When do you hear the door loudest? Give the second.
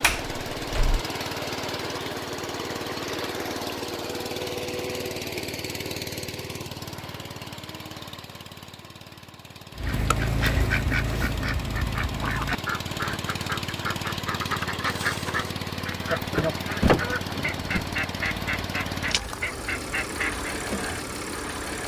17 s.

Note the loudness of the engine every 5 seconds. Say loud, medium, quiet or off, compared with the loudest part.
loud, medium, loud, loud, loud.